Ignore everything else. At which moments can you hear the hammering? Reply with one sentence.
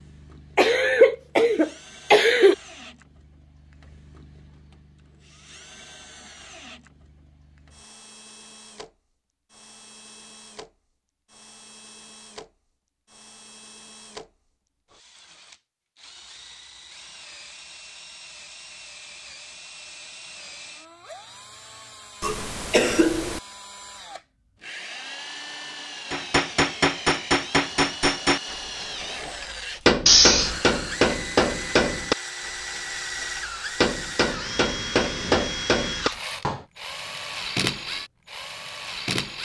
You can hear the hammering from 26.1 to 36.6 s.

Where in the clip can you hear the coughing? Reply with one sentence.
The coughing can be heard from 0.6 to 2.5 s, from 22.2 to 23.4 s and from 30.1 to 30.6 s.